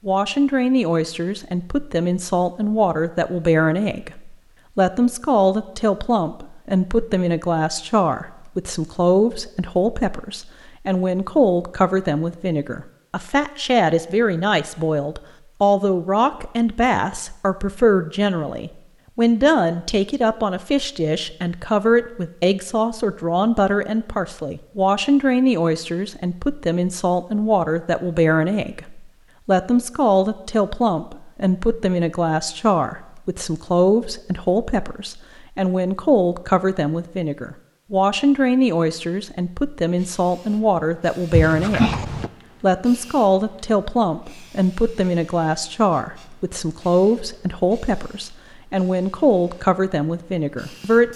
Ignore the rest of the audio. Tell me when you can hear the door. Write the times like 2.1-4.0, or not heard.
41.3-42.3.